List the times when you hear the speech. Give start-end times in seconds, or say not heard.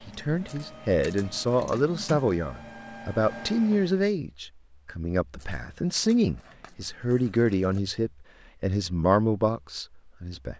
0.0-10.5.